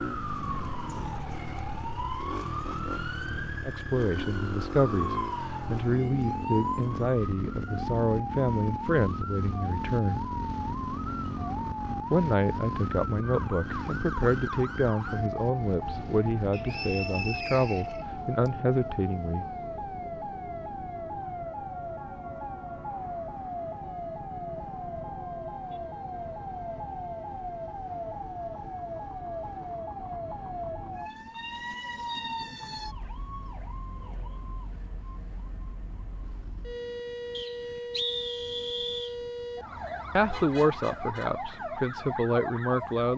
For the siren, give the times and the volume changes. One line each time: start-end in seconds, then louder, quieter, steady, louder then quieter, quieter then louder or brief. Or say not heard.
0.0-43.1 steady.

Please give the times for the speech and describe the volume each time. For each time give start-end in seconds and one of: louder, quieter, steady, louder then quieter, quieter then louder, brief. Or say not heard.
3.6-10.2 steady
12.1-19.4 steady
40.1-43.1 brief.